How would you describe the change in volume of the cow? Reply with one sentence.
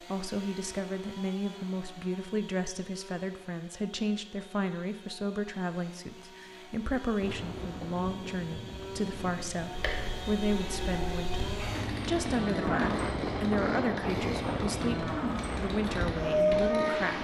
The loudness of the cow goes up.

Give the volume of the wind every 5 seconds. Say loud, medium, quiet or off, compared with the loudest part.
off, medium, loud, loud.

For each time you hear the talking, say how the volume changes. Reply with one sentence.
The talking can be heard from 0.0 to 17.1 s, at a steady volume.